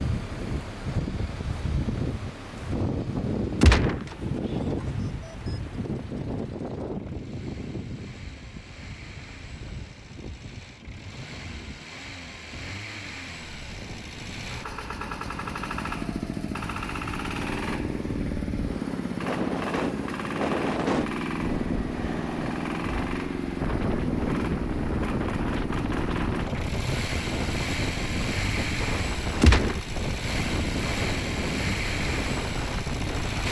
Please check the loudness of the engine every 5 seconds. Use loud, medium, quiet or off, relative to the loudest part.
quiet, quiet, medium, loud, loud, loud, loud.